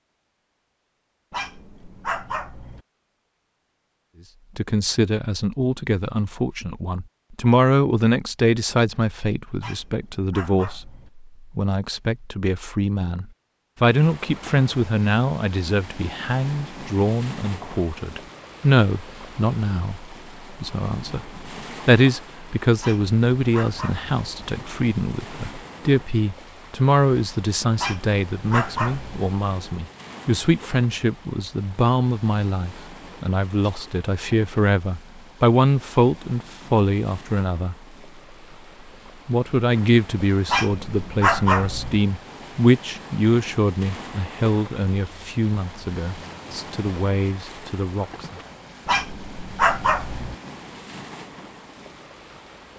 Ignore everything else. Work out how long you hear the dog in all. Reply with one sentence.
The dog can be heard for 9 seconds in total.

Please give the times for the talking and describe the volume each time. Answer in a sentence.
You can hear the talking from 4.5 to 37.8 s, at a steady volume; and from 39.2 to 48.4 s, getting quieter.